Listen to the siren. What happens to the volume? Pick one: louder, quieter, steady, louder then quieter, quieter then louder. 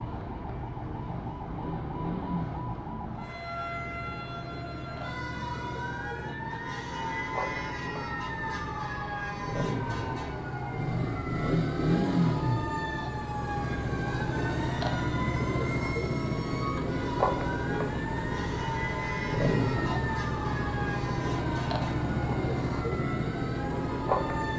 steady.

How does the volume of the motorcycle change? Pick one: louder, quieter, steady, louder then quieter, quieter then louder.
louder.